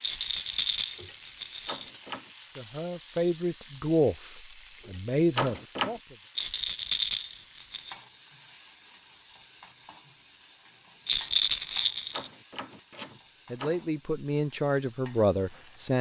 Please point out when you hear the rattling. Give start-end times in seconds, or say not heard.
0.0-1.9, 6.3-8.0, 11.1-12.3.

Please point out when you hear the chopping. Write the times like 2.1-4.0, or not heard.
not heard.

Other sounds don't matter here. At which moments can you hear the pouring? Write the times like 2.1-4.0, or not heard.
not heard.